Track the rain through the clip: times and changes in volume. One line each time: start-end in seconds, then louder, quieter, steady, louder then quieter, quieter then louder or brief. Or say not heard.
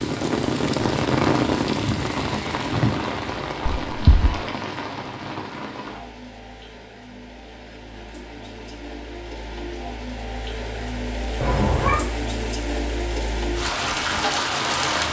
0.0-15.0 quieter then louder.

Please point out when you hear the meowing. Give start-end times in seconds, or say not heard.
3.6-4.4, 11.4-12.0.